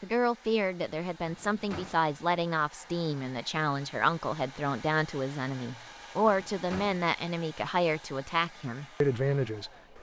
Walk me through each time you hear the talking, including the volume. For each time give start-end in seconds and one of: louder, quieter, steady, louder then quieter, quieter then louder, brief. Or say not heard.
0.0-9.7 steady.